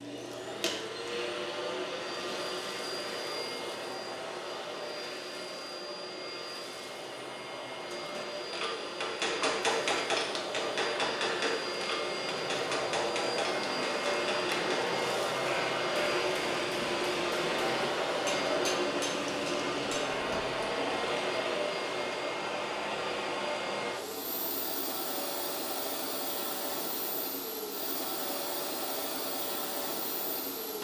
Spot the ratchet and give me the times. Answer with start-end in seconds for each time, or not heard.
not heard.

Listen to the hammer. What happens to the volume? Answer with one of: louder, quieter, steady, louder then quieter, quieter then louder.
quieter.